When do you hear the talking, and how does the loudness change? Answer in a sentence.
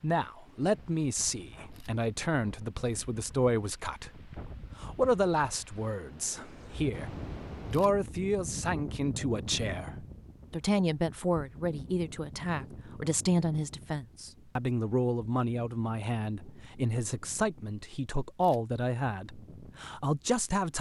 The talking can be heard from 0.0 to 20.7 s, at a steady volume.